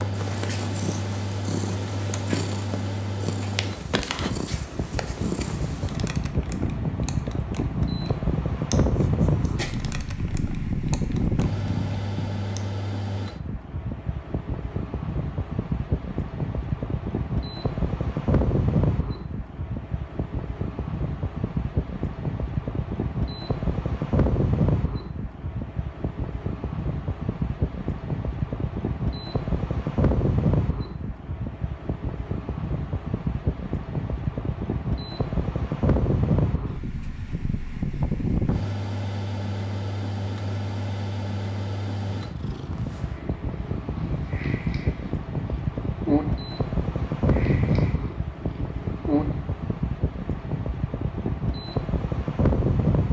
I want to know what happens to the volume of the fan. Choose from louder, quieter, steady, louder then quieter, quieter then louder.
steady.